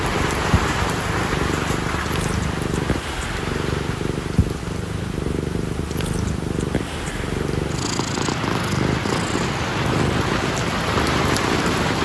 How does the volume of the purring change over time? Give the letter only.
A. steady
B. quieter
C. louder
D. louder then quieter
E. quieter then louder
A.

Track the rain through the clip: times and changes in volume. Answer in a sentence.
You can hear the rain from 0.0 to 12.0 s, getting quieter then louder.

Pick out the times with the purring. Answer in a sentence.
The purring can be heard from 0.0 to 12.0 s.